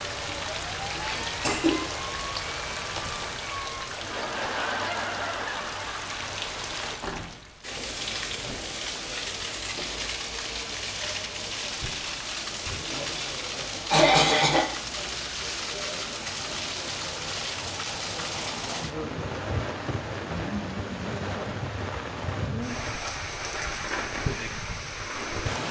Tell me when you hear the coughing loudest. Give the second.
14 s.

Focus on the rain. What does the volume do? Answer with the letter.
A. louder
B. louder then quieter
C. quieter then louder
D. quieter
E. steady
E.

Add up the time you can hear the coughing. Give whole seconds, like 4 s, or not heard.
2 s.